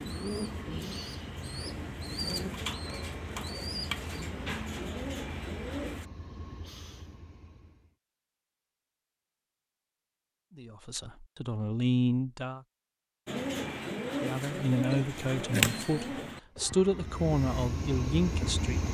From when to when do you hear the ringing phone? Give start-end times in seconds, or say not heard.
not heard.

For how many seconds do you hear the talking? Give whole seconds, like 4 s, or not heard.
7 s.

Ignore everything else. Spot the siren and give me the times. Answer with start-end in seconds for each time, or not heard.
not heard.